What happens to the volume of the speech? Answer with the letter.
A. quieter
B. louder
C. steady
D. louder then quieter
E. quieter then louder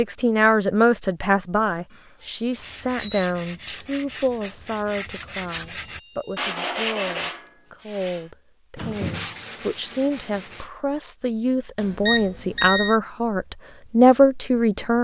E.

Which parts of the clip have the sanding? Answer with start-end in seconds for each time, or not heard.
2.5-10.7.